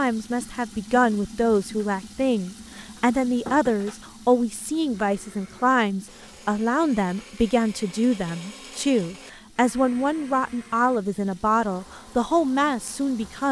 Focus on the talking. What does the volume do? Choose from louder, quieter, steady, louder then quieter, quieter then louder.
steady.